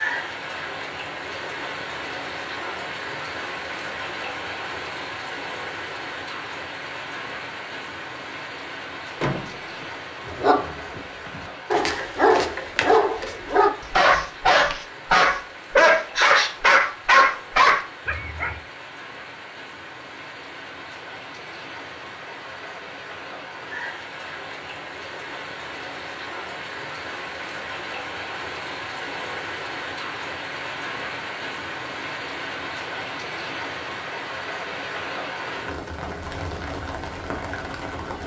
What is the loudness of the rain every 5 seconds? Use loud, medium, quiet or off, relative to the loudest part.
loud, loud, medium, medium, medium, loud, loud, loud.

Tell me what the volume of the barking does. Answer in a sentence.
The loudness of the barking goes up.